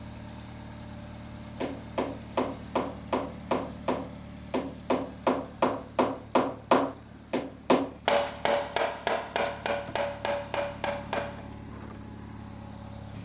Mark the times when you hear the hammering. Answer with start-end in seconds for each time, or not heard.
1.6-11.6.